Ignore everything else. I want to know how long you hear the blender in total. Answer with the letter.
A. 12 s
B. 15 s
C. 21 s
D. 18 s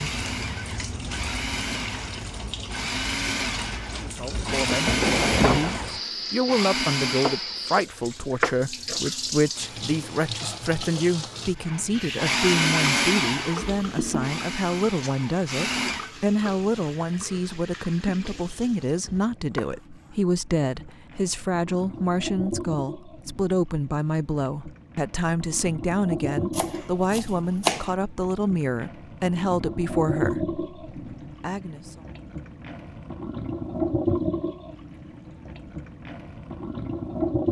A.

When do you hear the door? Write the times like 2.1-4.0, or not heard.
5.0-5.9.